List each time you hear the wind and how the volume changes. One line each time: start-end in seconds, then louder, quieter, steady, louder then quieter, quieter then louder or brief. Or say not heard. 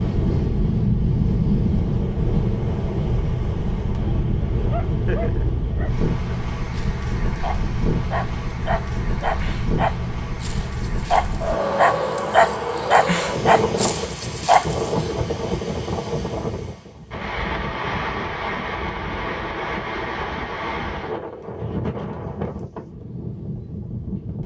0.0-24.4 quieter.